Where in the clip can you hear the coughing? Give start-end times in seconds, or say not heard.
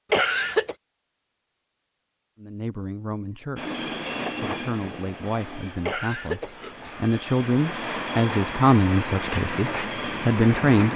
0.1-0.8, 5.8-7.0.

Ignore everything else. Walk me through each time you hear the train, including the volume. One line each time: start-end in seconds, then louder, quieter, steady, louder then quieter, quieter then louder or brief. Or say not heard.
3.5-10.9 quieter then louder.